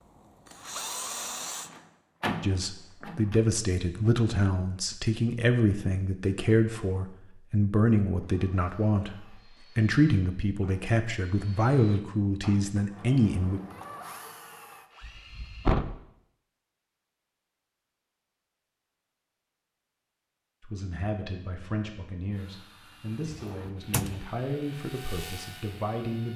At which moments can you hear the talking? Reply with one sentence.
You can hear the talking from 2.4 to 13.6 s and from 20.6 to 26.3 s.